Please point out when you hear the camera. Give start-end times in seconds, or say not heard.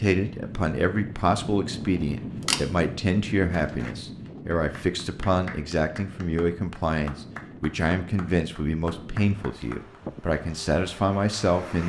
2.4-2.8.